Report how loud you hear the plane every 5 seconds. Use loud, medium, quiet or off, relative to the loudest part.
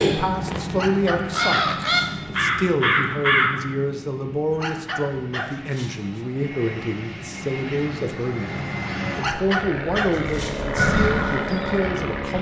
medium, medium, loud.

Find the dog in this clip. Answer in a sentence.
You can hear the dog from 0.7 to 2.4 s, from 4.5 to 6.2 s and from 9.1 to 10.8 s.